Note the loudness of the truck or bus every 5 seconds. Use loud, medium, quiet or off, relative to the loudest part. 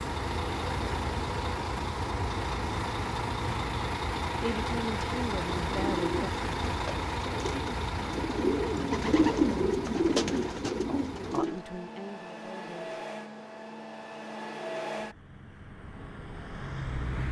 loud, loud, medium, medium.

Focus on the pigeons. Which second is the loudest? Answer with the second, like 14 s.
9 s.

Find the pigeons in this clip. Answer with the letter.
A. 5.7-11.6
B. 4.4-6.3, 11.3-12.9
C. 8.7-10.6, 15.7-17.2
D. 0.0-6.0
A.